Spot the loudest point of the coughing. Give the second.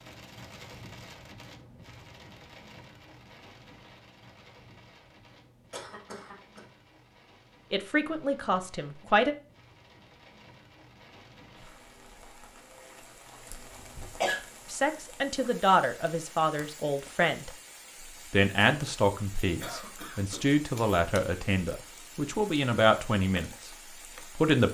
14 s.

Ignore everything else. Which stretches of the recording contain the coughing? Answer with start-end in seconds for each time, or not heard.
5.7-6.6, 13.3-14.4, 19.6-20.4.